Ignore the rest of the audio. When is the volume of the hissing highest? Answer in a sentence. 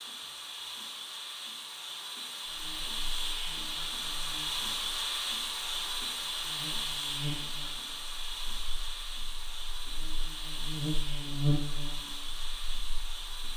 The volume of the hissing peaks at 5 seconds.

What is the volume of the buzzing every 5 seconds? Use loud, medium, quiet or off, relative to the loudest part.
quiet, medium, loud.